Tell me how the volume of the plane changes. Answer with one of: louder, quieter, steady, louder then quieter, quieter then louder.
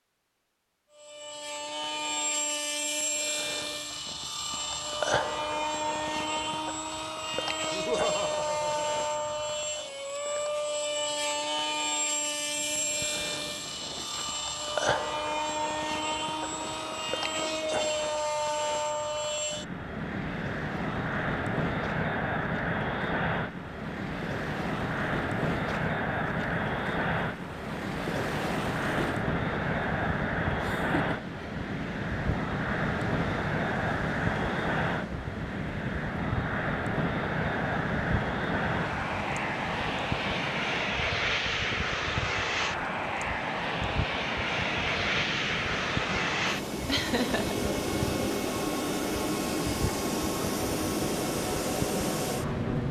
steady.